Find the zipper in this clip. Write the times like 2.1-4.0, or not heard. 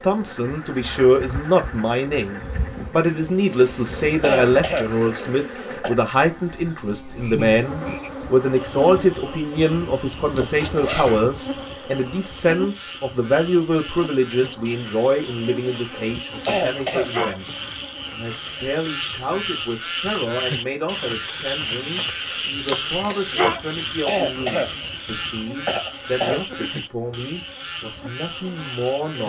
10.6-11.2.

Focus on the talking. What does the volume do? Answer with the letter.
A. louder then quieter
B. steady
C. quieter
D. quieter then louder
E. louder
C.